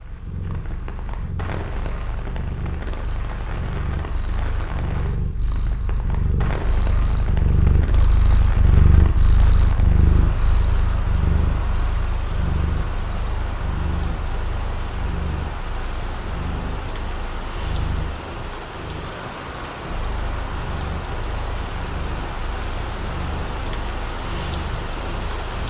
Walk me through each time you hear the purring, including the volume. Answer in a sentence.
You can hear the purring from 0.0 to 25.6 s, getting louder then quieter.